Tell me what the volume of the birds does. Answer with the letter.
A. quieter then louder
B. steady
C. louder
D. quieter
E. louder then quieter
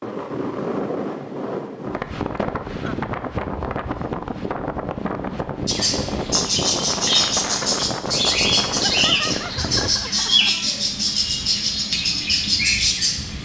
B.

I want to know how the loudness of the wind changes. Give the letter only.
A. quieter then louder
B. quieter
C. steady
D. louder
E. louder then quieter
C.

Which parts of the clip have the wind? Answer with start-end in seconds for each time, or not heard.
0.0-9.9.